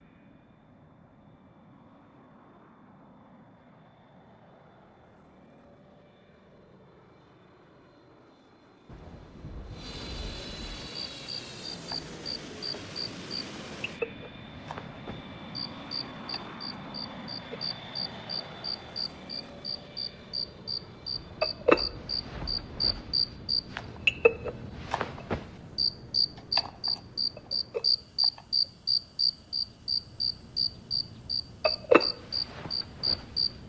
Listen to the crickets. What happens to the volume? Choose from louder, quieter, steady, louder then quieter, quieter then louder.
louder.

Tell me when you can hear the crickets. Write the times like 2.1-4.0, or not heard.
10.8-33.6.